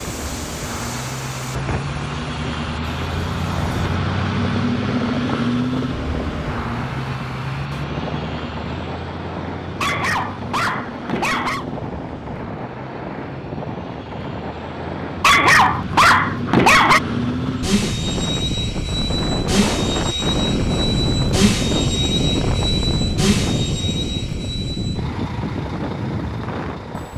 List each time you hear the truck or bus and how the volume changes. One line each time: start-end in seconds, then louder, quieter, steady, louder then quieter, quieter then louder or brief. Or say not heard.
0.0-27.1 quieter then louder.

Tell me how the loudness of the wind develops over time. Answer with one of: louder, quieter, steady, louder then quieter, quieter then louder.
louder.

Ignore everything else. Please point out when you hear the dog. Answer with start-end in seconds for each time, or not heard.
9.8-11.7, 15.2-17.0.